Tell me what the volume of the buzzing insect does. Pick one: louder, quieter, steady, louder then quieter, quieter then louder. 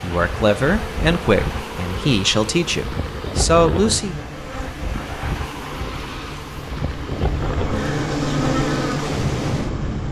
louder.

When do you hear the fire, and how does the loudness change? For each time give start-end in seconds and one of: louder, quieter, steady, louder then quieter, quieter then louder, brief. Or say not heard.
not heard.